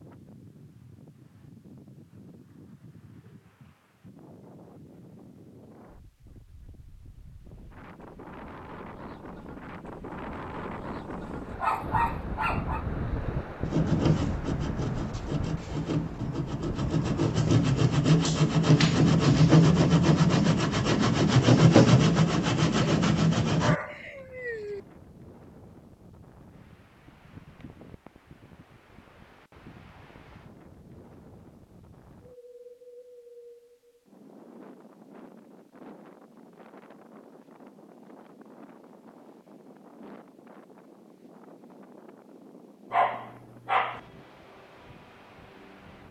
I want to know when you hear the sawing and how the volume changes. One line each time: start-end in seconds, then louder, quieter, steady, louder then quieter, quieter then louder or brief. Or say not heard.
13.7-23.8 louder.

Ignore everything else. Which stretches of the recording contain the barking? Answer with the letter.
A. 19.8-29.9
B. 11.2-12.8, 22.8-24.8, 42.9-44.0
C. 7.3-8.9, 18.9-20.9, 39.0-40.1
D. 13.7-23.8
B.